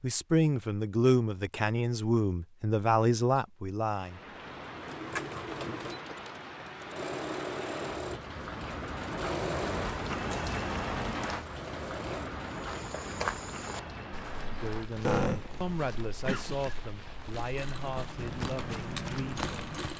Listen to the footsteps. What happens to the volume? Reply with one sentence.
The loudness of the footsteps goes down, then up.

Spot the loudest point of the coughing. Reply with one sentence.
The volume of the coughing peaks at 15 seconds.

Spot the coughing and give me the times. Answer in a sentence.
The coughing can be heard from 15.0 to 16.8 s.